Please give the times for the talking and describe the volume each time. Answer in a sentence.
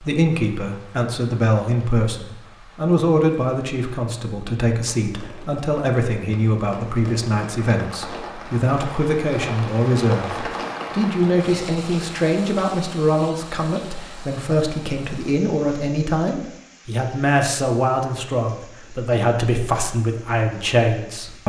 You can hear the talking from 0.0 to 21.4 s, at a steady volume.